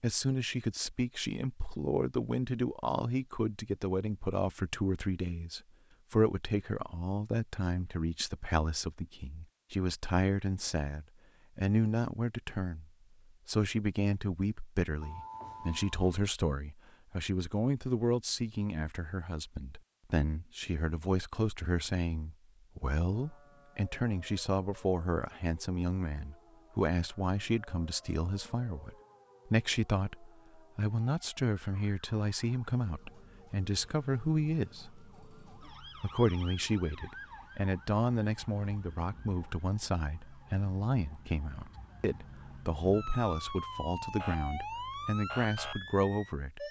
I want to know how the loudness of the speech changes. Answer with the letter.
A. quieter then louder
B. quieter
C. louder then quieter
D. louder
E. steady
E.